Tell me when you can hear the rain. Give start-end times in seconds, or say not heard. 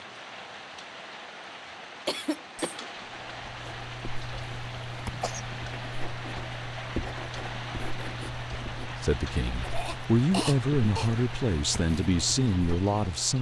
0.0-13.3.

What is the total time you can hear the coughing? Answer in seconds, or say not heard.
3 s.